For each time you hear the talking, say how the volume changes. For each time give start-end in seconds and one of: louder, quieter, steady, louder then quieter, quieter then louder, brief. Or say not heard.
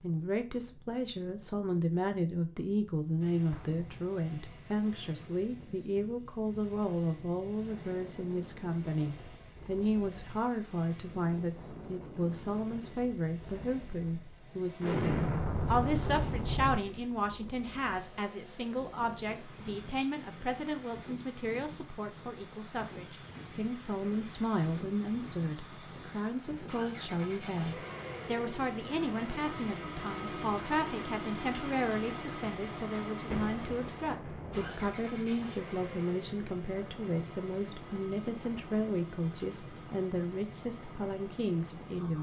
0.0-42.1 steady.